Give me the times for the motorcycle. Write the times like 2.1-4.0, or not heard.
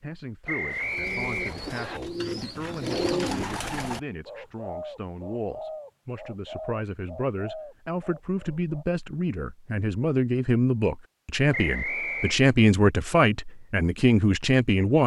not heard.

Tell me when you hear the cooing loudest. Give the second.
3 s.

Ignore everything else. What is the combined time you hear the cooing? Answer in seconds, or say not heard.
8 s.